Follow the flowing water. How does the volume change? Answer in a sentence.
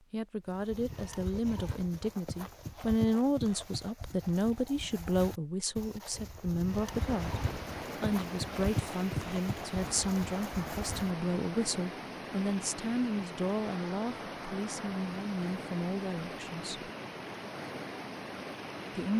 The loudness of the flowing water stays about the same.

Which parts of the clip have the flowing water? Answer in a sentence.
The flowing water can be heard from 6.7 to 19.1 s.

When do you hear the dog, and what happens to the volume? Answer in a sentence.
The dog can't be heard in this clip.